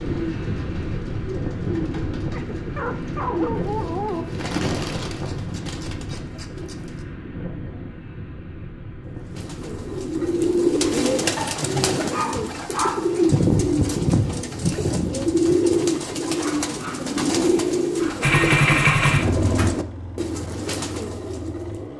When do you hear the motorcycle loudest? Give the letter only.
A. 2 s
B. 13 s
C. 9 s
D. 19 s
D.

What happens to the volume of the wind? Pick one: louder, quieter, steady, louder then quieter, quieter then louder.
quieter.